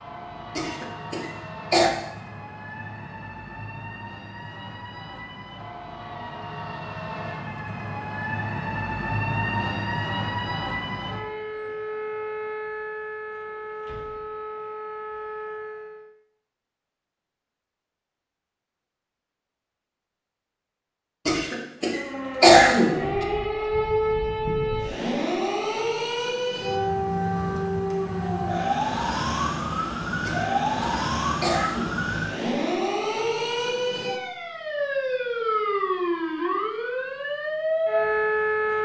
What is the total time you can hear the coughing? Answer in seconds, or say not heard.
5 s.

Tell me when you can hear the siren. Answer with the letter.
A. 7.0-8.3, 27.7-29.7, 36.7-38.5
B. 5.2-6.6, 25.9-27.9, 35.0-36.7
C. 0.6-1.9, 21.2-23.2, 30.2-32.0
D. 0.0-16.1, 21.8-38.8
D.